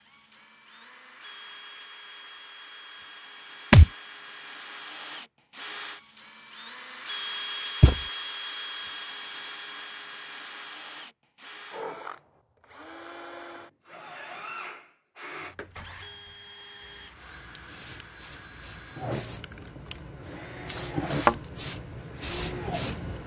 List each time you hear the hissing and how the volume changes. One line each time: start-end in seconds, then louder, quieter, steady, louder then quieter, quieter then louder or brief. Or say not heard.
16.8-23.2 louder.